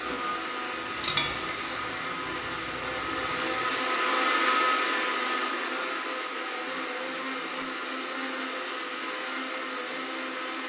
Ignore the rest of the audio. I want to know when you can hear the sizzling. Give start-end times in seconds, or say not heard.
0.0-3.8.